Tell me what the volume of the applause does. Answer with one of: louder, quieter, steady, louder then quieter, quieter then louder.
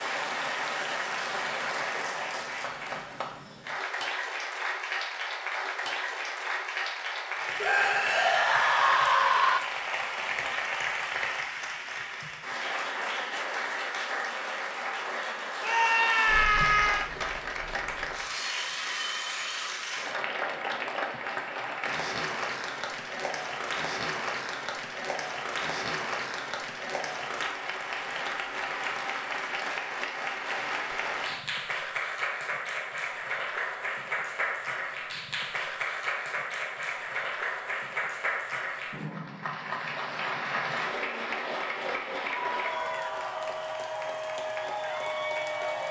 steady.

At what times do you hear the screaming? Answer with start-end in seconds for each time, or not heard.
7.6-9.6, 15.6-17.1, 42.5-43.5.